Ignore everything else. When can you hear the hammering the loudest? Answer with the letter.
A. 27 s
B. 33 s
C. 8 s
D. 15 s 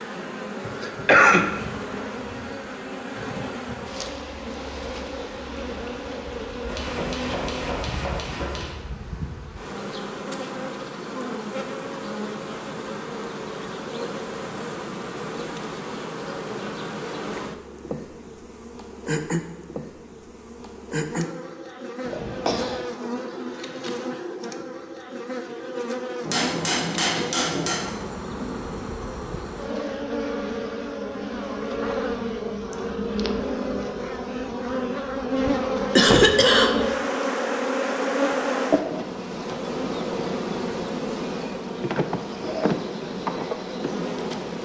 A.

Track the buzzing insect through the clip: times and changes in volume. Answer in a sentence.
You can hear the buzzing insect from 0.0 to 44.6 s, getting louder.